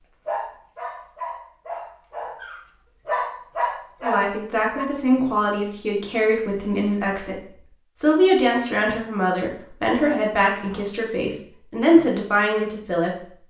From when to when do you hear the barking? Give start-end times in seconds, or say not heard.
0.2-4.8.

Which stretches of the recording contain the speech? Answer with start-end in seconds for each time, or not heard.
4.0-13.3.